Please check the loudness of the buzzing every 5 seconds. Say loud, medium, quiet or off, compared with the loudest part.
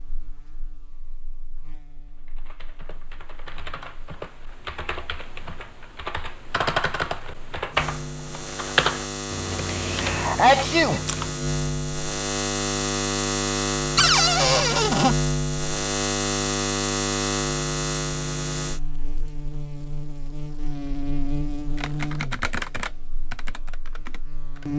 quiet, medium, loud, loud, medium.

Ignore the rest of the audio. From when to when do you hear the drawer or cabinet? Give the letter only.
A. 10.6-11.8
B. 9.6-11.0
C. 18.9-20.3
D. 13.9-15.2
D.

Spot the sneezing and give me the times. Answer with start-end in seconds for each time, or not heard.
9.6-11.0.